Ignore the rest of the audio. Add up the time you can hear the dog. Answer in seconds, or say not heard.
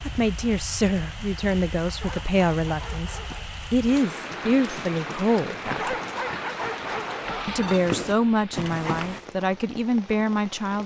4 s.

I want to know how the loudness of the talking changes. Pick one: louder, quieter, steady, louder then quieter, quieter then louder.
steady.